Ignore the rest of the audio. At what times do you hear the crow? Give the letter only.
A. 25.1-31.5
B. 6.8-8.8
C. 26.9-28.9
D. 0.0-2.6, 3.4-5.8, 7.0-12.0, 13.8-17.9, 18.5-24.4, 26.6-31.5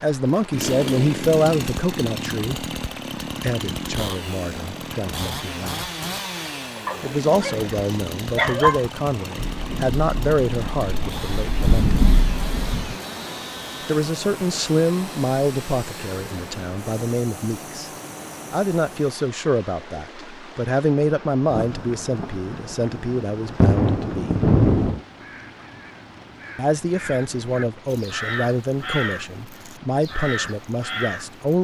A.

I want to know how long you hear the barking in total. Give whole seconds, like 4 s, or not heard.
2 s.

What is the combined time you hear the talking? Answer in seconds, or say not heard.
25 s.